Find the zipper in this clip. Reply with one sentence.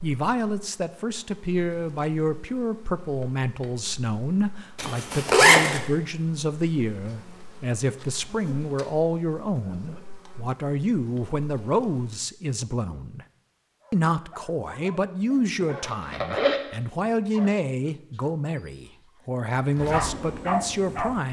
The zipper can be heard from 4.8 to 5.8 s and from 15.6 to 16.6 s.